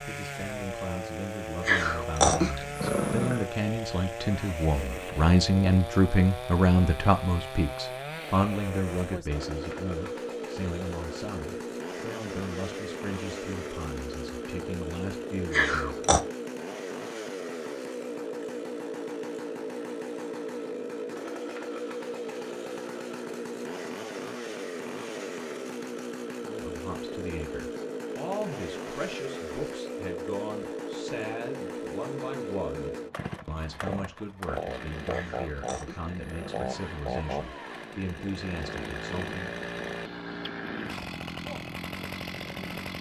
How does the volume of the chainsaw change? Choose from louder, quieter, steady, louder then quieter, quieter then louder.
steady.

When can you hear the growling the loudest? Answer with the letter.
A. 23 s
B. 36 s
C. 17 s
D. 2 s
D.